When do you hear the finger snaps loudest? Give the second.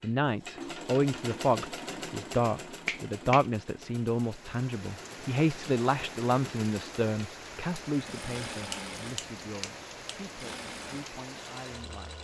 3 s.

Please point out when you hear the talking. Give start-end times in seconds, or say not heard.
0.0-12.1.